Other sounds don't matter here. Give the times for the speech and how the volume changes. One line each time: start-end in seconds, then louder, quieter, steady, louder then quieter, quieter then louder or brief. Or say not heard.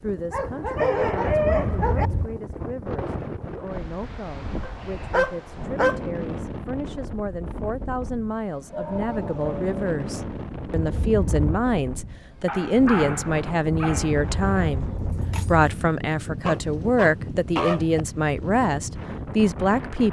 0.0-20.0 louder.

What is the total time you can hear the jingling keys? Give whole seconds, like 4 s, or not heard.
4 s.